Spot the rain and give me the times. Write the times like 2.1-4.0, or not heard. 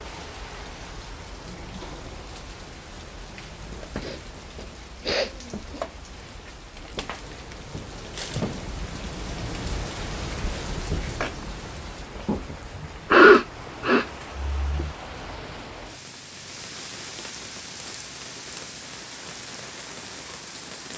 0.0-20.9.